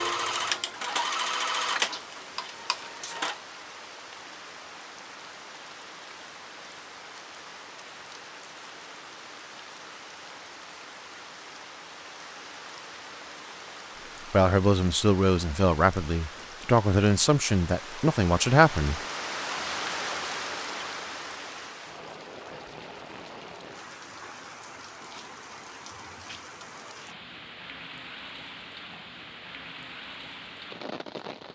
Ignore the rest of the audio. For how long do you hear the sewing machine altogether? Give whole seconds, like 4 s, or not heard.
3 s.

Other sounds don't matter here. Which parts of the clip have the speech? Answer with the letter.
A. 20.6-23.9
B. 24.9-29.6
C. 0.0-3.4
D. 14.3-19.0
D.